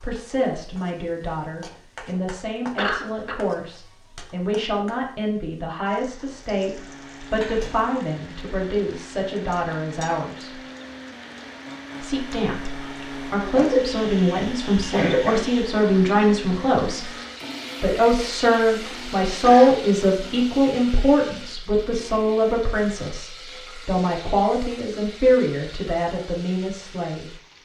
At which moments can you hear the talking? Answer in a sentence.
You can hear the talking from 0.0 to 10.5 s, from 12.0 to 17.1 s and from 17.8 to 27.2 s.